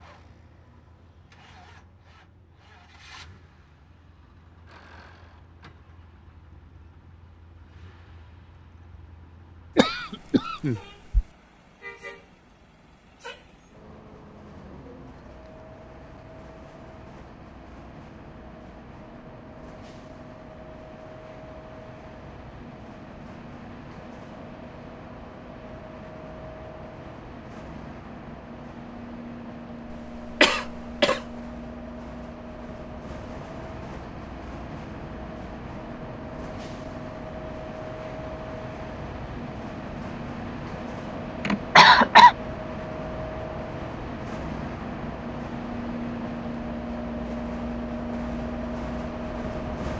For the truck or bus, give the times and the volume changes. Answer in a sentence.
You can hear the truck or bus from 0.0 to 49.9 s, getting louder.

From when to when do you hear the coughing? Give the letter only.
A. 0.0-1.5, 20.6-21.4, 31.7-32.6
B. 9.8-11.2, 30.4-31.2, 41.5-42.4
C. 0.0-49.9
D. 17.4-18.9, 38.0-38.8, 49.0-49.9
B.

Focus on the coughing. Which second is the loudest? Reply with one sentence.
The loudest moment of the coughing is at 42 seconds.